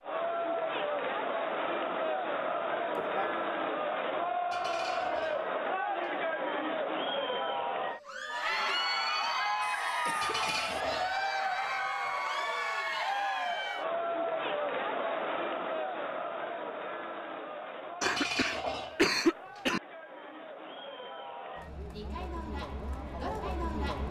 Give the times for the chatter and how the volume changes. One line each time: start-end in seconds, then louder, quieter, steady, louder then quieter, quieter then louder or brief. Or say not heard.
0.0-24.0 quieter.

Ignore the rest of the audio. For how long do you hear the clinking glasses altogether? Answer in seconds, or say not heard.
5 s.